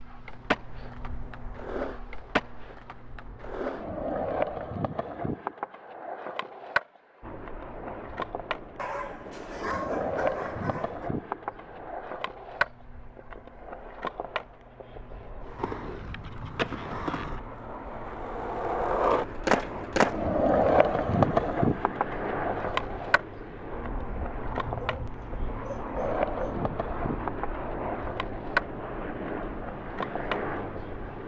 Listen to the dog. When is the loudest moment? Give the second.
10 s.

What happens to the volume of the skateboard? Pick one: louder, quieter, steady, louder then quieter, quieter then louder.
louder then quieter.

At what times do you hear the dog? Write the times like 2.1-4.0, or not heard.
8.8-11.1, 24.6-26.6.